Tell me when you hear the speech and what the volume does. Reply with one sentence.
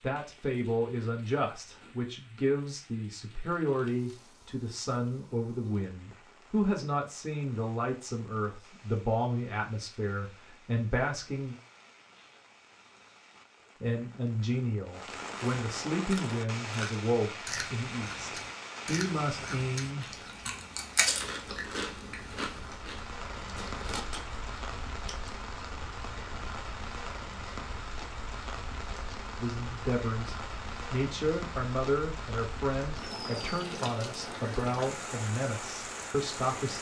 You can hear the speech from 0.0 to 11.6 s, at a steady volume; from 13.8 to 20.5 s, getting quieter then louder; and from 29.4 to 36.7 s, at a steady volume.